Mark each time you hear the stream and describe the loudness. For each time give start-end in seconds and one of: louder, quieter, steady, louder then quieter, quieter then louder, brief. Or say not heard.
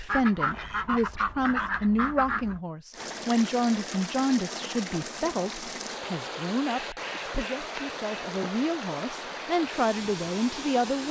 2.9-11.0 steady.